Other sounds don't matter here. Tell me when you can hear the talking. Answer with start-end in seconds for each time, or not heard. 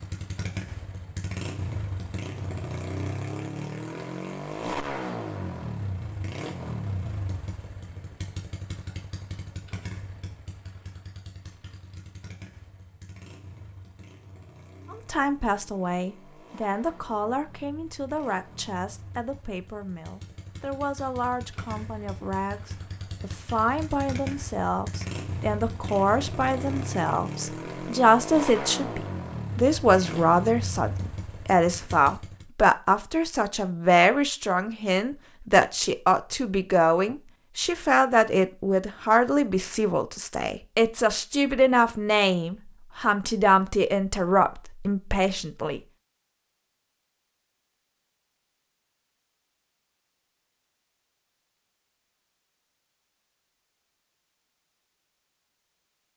14.9-45.8.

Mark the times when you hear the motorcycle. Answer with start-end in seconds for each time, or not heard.
0.0-32.5.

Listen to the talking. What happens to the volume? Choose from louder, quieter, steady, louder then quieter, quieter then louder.
louder.